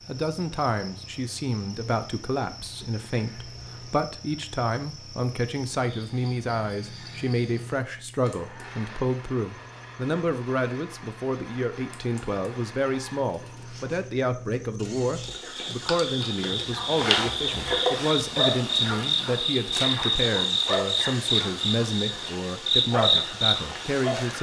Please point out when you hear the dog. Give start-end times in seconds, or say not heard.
not heard.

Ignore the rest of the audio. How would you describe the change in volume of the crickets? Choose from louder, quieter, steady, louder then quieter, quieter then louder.
louder.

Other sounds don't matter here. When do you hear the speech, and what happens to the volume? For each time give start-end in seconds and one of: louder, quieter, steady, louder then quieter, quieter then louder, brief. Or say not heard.
0.1-24.3 steady.